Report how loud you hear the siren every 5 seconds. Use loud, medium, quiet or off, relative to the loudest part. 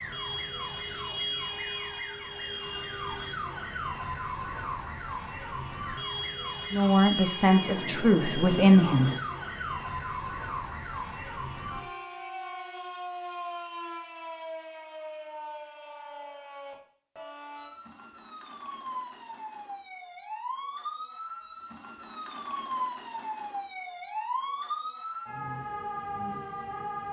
loud, loud, loud, medium, loud, loud.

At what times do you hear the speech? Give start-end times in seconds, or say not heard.
6.7-9.2.